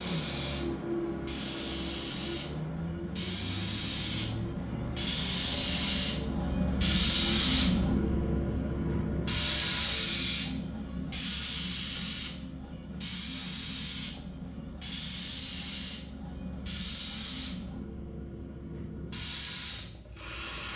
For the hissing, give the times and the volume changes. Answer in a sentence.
You can hear the hissing from 0.0 to 20.7 s, getting louder then quieter.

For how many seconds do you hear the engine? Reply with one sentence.
You can hear the engine for 10 seconds altogether.